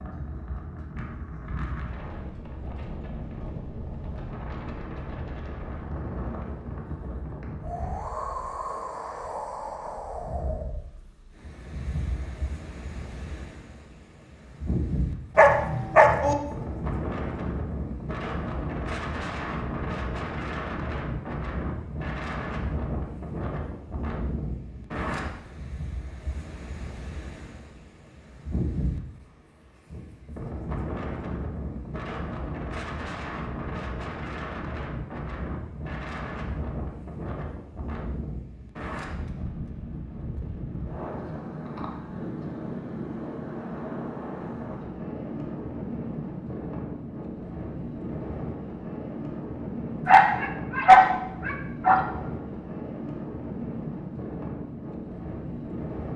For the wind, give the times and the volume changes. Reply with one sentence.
The wind can be heard from 0.0 to 56.1 s, at a steady volume.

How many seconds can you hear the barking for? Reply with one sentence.
The barking can be heard for 3 seconds in total.